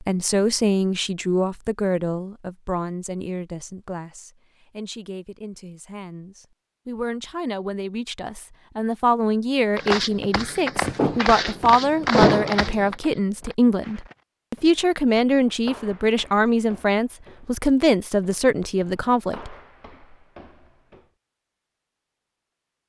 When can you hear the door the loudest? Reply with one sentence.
The loudest moment of the door is at 12 seconds.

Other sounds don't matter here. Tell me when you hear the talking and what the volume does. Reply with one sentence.
You can hear the talking from 0.0 to 19.6 s, getting quieter then louder.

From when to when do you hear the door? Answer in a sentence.
The door can be heard from 10.8 to 12.7 s.